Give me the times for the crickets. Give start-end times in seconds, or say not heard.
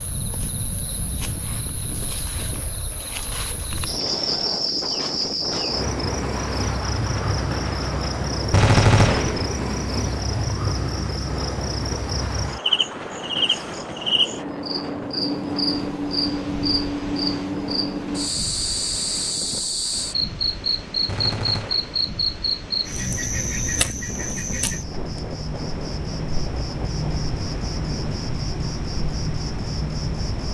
0.0-30.5.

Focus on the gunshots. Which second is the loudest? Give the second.
9 s.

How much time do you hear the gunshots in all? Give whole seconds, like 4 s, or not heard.
2 s.